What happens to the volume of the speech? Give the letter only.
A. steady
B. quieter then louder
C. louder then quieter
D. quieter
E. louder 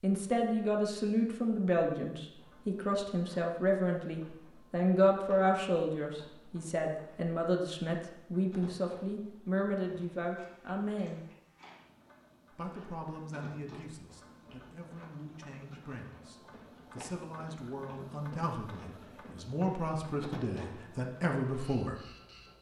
B.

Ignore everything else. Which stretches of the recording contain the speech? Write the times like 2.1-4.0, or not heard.
0.0-11.2, 12.5-21.9.